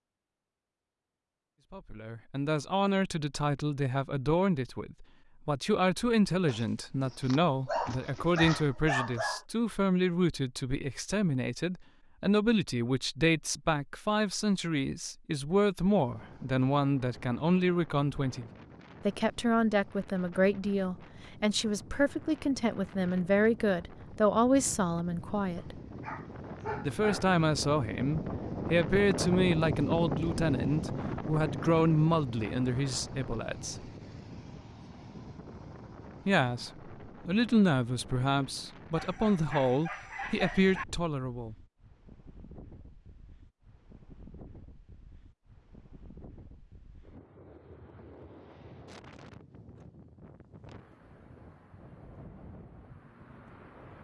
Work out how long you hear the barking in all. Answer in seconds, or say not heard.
7 s.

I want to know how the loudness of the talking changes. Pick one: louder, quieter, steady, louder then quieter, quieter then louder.
steady.